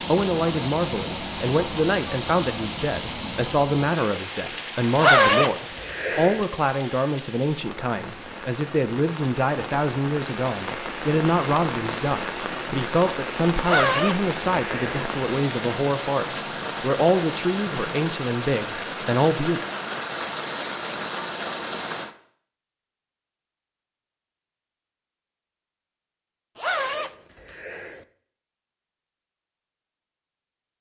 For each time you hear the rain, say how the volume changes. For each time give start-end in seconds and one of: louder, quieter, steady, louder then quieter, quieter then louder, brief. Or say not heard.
0.0-22.1 quieter then louder.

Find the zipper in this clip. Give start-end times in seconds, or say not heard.
5.0-6.5, 13.6-15.1, 26.6-28.1.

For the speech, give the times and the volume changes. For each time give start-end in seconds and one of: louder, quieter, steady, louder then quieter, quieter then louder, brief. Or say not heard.
0.1-19.6 steady.